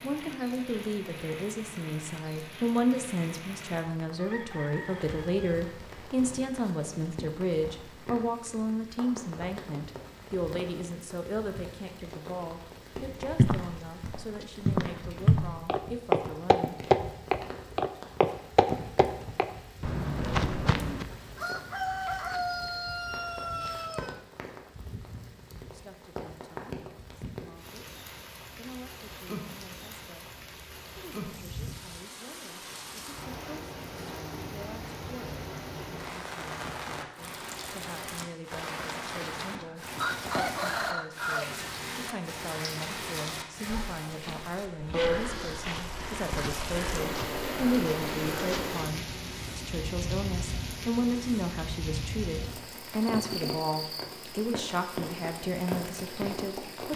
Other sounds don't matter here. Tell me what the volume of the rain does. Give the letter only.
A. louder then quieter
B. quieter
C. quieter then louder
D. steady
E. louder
E.